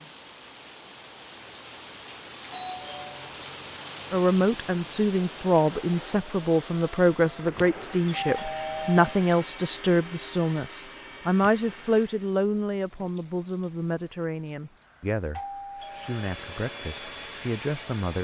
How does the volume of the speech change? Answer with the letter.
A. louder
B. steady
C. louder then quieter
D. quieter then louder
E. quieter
E.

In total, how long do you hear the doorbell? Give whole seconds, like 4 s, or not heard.
3 s.